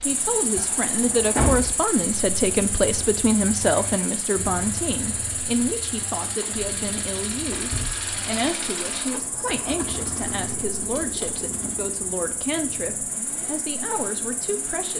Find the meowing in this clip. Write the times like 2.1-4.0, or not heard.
not heard.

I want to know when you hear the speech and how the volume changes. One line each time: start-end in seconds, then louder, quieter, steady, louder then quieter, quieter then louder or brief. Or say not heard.
0.1-14.9 quieter.